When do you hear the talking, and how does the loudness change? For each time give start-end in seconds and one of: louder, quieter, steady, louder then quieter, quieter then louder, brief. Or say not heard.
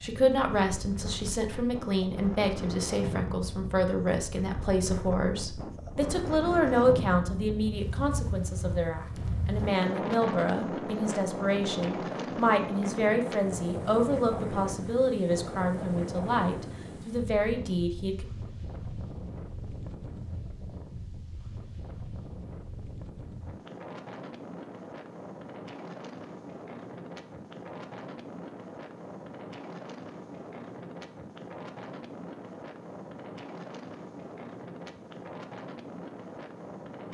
0.0-18.2 steady.